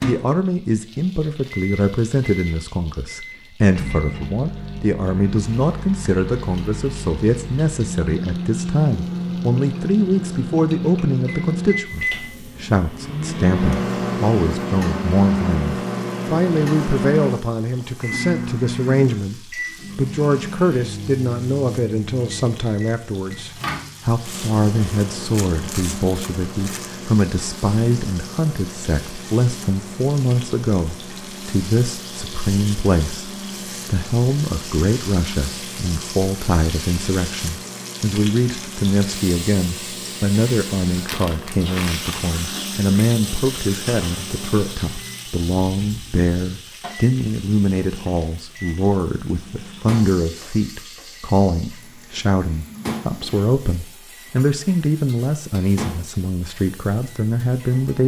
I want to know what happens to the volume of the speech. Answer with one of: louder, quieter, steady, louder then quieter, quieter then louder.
steady.